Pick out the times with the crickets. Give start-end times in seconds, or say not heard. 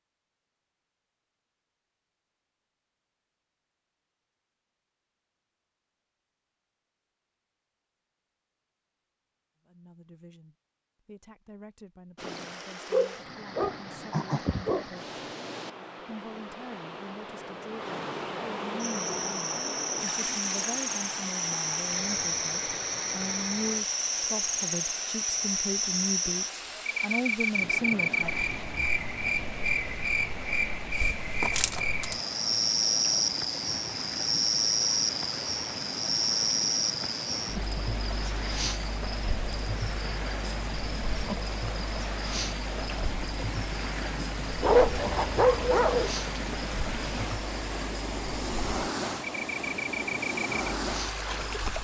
18.8-51.7.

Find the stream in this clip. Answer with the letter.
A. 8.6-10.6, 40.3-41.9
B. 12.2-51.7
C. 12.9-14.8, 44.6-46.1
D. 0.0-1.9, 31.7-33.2
B.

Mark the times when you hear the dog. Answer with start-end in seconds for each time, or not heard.
12.9-14.8, 44.6-46.1.